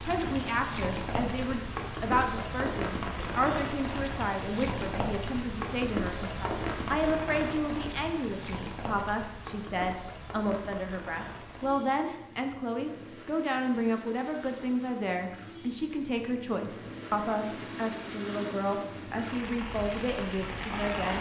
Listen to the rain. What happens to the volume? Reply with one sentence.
The volume of the rain goes down, then up.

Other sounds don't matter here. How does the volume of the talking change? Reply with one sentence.
The volume of the talking stays about the same.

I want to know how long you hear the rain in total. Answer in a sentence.
The rain can be heard for 21 seconds in total.